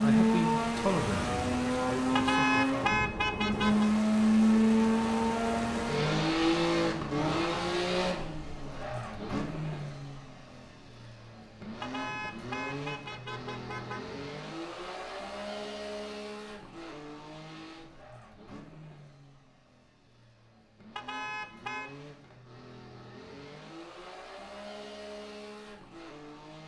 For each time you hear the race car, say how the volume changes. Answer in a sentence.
You can hear the race car from 0.0 to 26.6 s, getting quieter.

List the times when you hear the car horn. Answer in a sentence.
The car horn can be heard from 2.1 to 3.9 s, from 11.8 to 14.0 s and from 20.9 to 21.9 s.